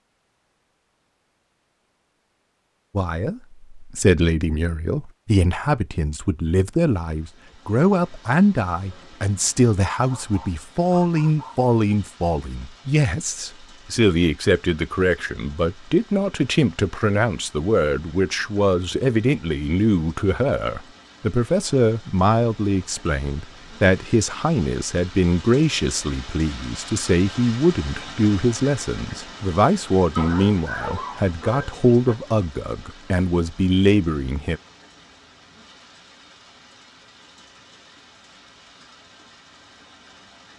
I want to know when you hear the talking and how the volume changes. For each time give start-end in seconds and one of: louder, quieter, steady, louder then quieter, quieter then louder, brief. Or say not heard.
3.0-34.6 steady.